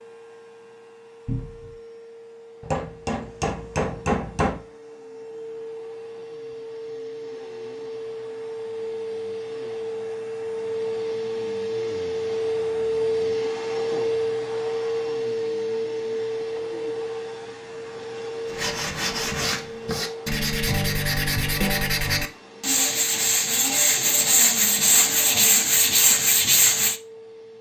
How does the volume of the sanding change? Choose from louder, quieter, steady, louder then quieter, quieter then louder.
louder.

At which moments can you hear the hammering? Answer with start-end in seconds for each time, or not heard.
2.6-4.7.